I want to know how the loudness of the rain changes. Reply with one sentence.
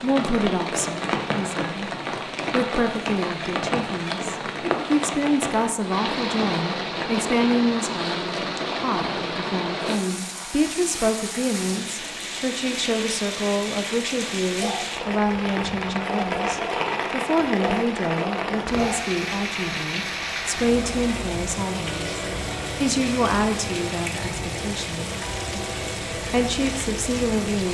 The loudness of the rain stays about the same.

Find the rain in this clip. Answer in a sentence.
You can hear the rain from 0.0 to 27.6 s.